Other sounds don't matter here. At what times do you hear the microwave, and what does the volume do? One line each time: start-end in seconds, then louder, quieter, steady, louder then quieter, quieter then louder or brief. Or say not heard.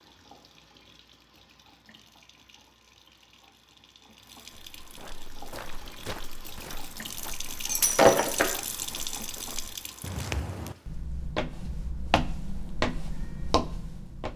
not heard.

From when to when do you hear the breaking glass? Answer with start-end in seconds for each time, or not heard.
7.7-8.5.